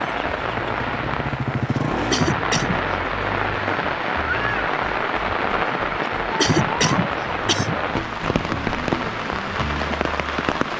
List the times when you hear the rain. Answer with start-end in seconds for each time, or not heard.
0.0-10.7.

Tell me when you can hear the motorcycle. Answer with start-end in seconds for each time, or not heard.
0.0-2.4.